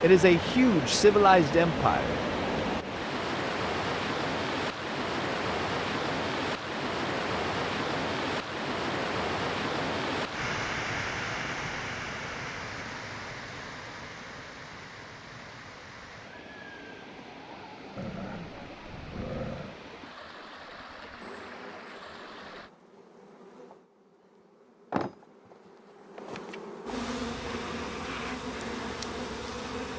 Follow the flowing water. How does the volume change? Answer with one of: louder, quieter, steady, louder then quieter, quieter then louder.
quieter.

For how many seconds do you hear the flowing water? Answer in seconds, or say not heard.
23 s.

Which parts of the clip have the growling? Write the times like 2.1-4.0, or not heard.
17.9-19.8.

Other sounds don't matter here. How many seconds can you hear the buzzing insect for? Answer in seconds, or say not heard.
9 s.